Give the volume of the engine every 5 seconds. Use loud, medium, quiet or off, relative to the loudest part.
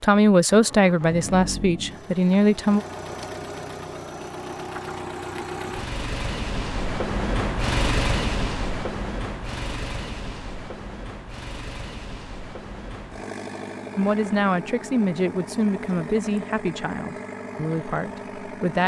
medium, loud, medium, medium.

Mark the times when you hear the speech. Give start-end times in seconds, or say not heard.
0.0-2.9, 13.9-18.8.